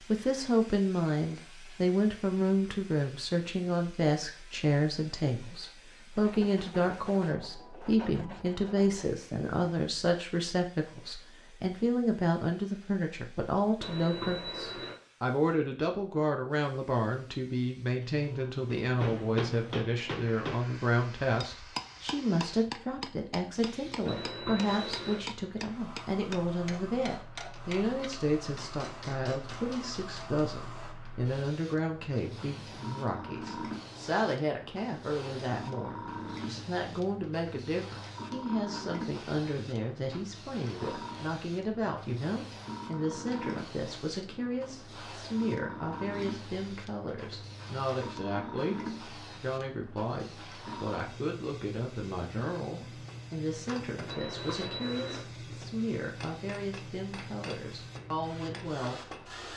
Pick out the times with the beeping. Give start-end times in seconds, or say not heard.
13.8-14.9, 24.1-25.2, 54.0-55.2.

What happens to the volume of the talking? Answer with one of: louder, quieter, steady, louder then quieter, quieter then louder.
quieter.